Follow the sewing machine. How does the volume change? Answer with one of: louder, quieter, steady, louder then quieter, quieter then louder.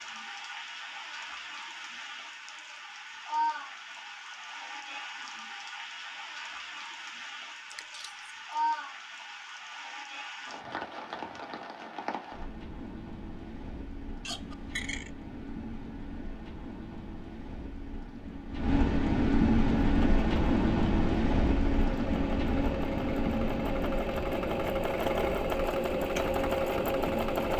louder.